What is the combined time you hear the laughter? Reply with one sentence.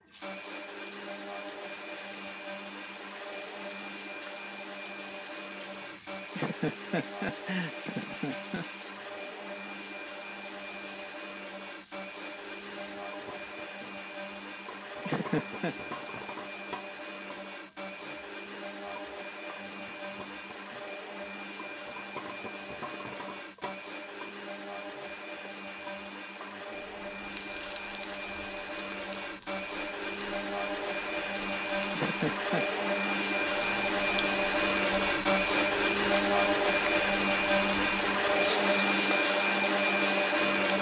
You can hear the laughter for 4 seconds altogether.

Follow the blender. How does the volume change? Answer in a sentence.
The volume of the blender goes up.